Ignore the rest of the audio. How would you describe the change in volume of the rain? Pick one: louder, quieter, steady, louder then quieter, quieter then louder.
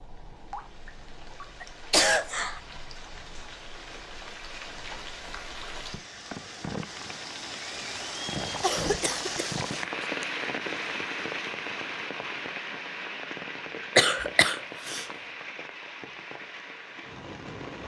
louder then quieter.